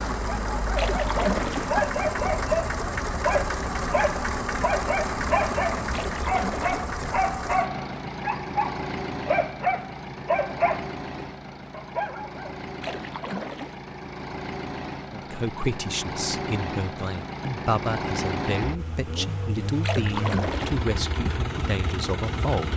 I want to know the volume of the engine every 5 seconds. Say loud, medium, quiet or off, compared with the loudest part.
loud, loud, medium, loud, loud.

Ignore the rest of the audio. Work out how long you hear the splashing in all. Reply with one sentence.
You can hear the splashing for 4 seconds altogether.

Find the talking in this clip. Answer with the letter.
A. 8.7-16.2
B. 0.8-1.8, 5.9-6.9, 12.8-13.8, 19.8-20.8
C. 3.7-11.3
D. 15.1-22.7
D.